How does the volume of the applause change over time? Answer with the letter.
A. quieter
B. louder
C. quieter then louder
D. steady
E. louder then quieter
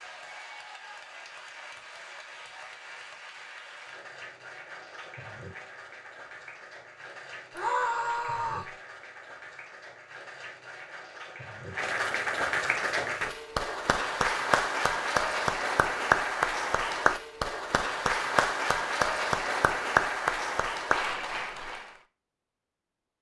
B.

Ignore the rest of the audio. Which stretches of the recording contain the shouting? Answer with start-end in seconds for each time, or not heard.
7.5-8.7.